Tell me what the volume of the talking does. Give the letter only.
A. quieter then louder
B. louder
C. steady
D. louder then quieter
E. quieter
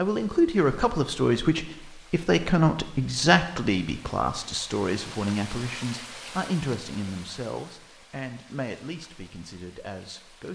E.